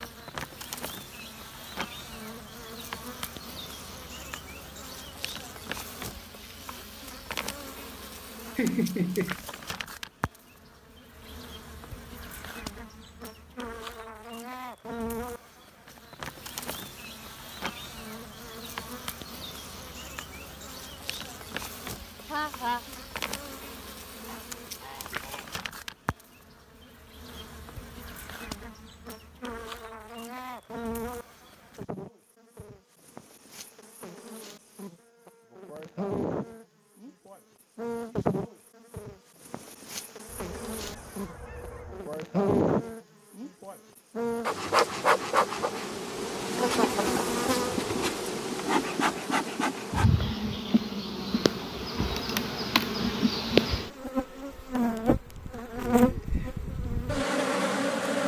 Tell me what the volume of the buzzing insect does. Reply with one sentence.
The volume of the buzzing insect goes up.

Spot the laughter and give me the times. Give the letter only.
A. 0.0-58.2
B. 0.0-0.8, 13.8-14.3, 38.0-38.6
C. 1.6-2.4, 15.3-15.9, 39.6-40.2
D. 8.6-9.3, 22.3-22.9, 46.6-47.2
D.